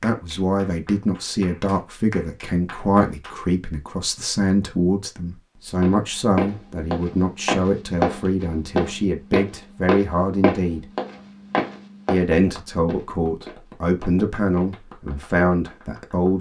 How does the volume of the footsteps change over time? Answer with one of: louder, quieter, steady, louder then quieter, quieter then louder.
quieter.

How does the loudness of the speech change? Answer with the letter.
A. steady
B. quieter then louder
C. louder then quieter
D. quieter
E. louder
A.